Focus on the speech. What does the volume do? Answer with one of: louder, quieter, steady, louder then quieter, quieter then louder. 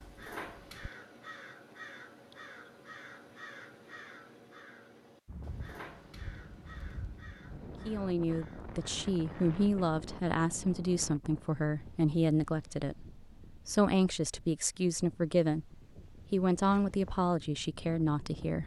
steady.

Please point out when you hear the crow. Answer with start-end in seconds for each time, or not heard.
0.0-9.6.